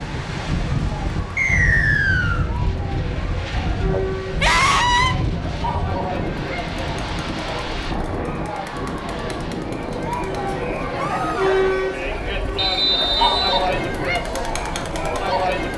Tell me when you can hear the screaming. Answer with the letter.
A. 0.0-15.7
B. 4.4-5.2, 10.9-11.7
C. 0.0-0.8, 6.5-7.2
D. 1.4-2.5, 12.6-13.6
B.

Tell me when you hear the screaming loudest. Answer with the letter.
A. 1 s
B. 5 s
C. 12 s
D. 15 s
B.